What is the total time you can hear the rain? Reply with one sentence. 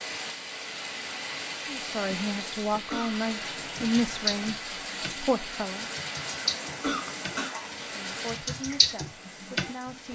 You can hear the rain for 10 seconds altogether.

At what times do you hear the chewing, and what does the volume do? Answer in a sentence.
You can't hear the chewing here.